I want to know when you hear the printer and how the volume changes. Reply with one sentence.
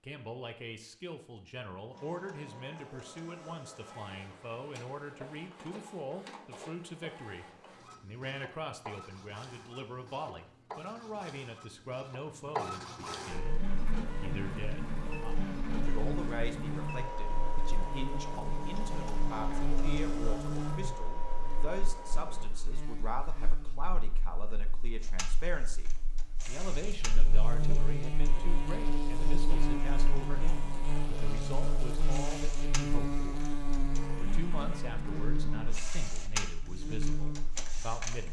You can hear the printer from 1.9 to 22.5 s, getting louder; and from 25.0 to 38.2 s, getting louder.